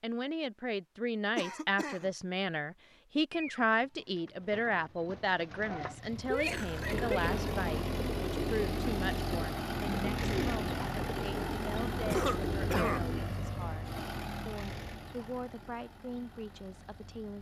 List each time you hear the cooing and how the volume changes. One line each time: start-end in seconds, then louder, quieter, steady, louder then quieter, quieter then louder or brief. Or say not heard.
3.3-13.3 louder.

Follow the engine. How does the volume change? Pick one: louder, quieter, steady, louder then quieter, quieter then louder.
quieter.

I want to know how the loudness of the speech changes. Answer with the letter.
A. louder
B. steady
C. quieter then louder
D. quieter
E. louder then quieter
D.